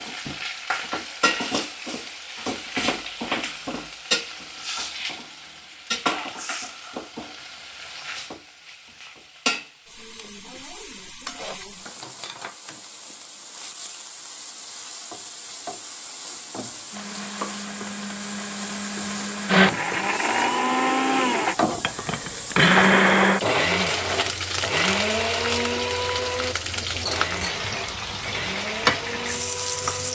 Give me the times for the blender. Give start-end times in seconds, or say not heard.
16.9-30.1.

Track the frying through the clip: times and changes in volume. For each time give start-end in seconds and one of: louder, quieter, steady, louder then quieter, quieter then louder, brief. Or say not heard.
0.0-30.1 quieter then louder.